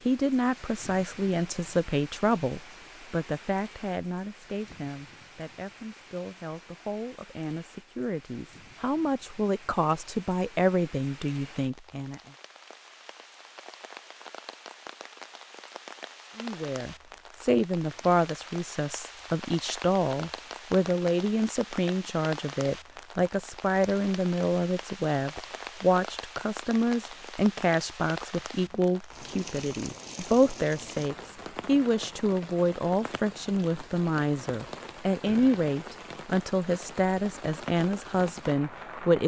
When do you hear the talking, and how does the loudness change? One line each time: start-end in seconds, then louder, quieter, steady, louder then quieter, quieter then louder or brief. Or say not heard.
0.1-12.2 quieter then louder
16.4-39.2 steady.